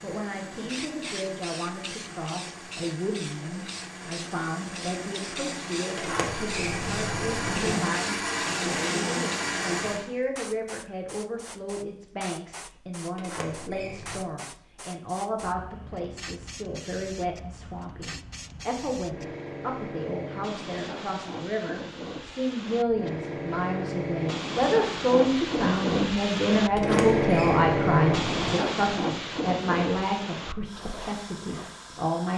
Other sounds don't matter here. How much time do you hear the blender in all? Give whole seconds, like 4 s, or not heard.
10 s.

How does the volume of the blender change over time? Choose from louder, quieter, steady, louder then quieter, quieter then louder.
louder.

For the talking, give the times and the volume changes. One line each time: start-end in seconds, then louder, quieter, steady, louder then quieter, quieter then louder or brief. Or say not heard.
0.0-32.3 louder.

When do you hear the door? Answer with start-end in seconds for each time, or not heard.
6.0-7.8, 13.2-14.2, 26.7-28.6.